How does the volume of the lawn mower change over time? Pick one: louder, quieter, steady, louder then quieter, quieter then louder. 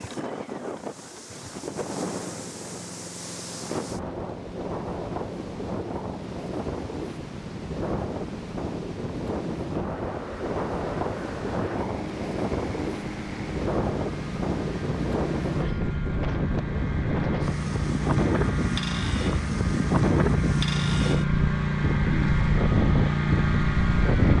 louder.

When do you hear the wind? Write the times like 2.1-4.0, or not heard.
0.0-24.3.